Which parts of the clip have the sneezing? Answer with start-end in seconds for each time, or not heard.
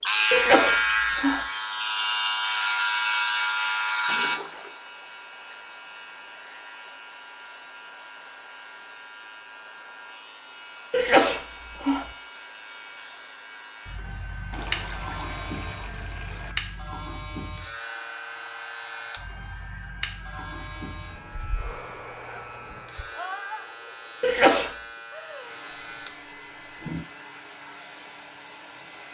0.3-1.4, 10.9-12.1, 24.2-24.7.